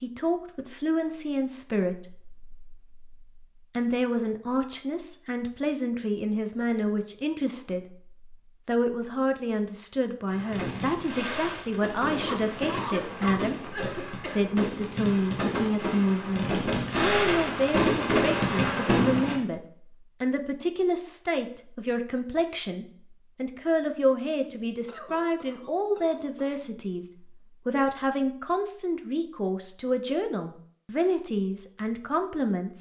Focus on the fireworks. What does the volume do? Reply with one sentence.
The volume of the fireworks goes up.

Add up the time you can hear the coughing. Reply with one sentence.
You can hear the coughing for 4 seconds altogether.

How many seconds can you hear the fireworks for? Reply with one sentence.
You can hear the fireworks for 9 seconds altogether.